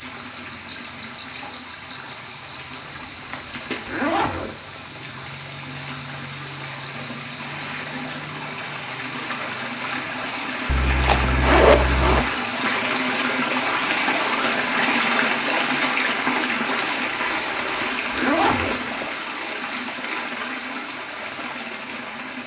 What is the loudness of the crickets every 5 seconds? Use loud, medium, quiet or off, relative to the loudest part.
loud, loud, medium, medium, medium.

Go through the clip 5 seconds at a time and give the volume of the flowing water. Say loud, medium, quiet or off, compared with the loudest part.
quiet, medium, loud, loud, medium.